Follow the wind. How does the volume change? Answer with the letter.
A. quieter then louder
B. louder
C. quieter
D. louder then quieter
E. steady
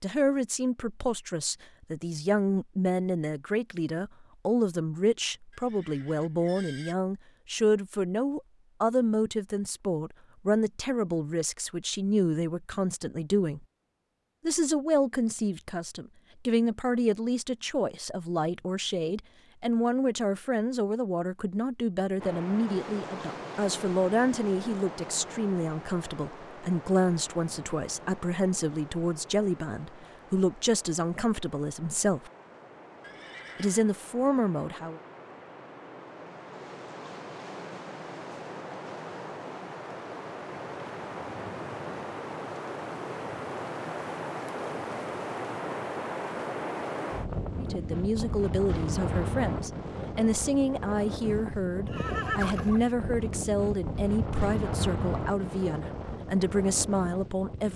A.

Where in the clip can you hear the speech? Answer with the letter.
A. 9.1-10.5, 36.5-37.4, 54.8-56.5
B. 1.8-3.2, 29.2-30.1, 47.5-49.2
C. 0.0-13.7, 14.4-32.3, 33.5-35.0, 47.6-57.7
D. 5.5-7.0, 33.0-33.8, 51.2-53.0
C.